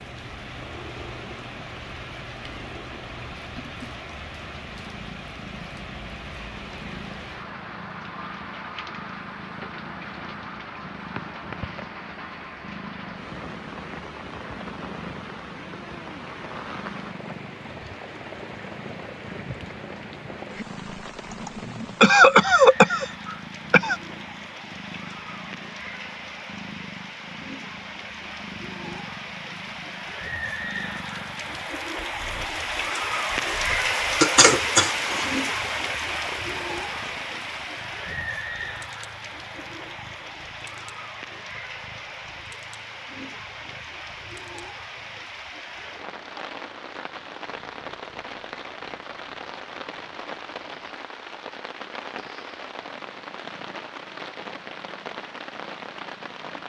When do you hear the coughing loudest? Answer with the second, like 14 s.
22 s.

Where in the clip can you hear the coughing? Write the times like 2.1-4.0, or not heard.
21.3-23.9, 34.2-35.3.